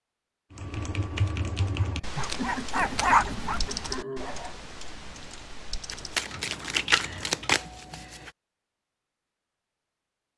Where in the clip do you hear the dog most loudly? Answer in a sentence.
The volume of the dog peaks at 3 seconds.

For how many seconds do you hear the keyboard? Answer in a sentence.
The keyboard can be heard for 7 seconds in total.